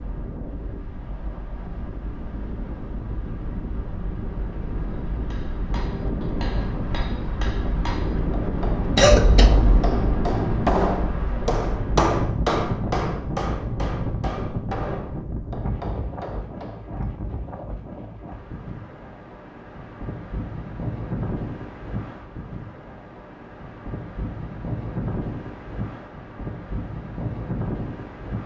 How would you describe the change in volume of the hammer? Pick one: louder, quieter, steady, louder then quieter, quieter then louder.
louder then quieter.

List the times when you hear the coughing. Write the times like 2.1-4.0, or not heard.
8.9-9.9.